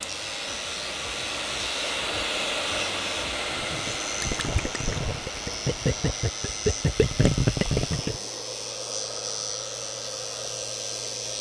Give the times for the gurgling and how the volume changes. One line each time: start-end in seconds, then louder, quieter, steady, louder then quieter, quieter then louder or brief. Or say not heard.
3.5-8.2 louder.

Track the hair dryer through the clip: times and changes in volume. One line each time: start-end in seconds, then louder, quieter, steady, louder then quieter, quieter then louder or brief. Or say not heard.
0.0-11.3 quieter.